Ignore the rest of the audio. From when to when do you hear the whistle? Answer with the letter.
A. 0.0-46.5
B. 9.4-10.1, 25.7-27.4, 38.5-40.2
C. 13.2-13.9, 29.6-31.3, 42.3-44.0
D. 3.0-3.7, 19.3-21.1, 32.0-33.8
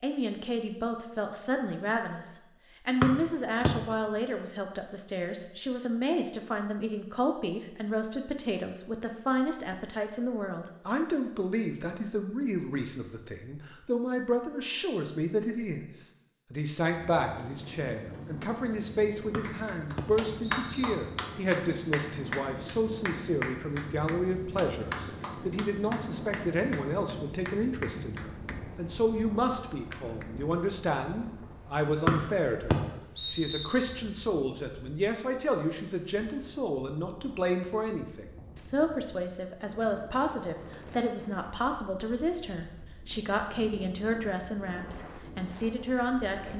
D.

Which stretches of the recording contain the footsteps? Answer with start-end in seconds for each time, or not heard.
not heard.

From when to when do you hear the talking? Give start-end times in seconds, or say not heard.
0.0-46.5.